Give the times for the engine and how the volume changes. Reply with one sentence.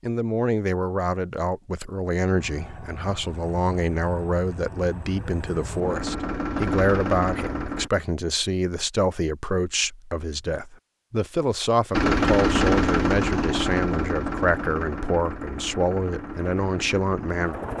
The engine can be heard from 2.4 to 7.9 s, getting louder; and from 11.9 to 17.7 s, getting quieter.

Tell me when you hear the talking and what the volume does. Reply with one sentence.
The talking can be heard from 0.0 to 17.6 s, at a steady volume.